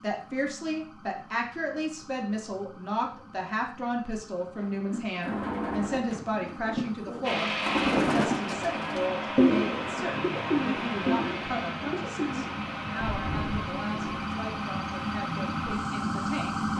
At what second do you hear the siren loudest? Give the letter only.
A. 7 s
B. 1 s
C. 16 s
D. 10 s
C.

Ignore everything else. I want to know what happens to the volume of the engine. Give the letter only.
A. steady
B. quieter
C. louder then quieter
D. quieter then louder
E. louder
B.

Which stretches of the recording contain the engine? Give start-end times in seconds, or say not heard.
7.2-16.7.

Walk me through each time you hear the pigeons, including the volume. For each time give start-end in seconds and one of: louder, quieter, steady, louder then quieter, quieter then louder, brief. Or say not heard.
4.4-14.2 louder then quieter.